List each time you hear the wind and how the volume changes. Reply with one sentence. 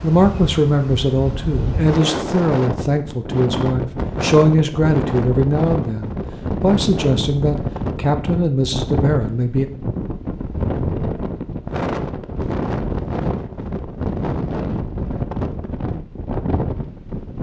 You can hear the wind from 0.0 to 17.3 s, at a steady volume.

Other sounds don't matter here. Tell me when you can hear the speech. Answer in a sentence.
You can hear the speech from 0.0 to 9.7 s.